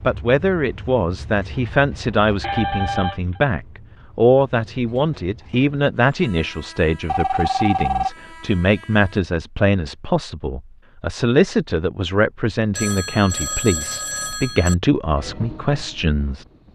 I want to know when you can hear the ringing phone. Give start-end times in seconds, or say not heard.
2.4-3.4, 7.0-8.1, 12.8-14.8.